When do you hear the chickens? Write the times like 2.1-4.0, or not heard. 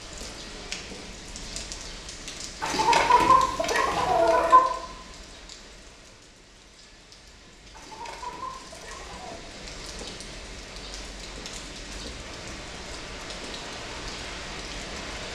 2.6-4.6, 7.7-9.4.